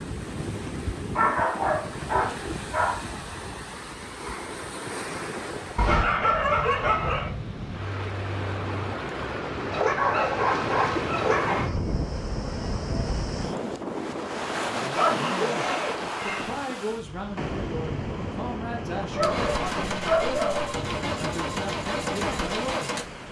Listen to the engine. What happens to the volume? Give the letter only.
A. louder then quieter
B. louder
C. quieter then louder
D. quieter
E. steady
E.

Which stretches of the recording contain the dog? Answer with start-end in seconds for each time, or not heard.
1.1-3.0, 5.8-7.3, 9.7-11.8, 14.9-16.6, 19.1-20.8.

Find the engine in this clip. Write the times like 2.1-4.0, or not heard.
19.1-23.2.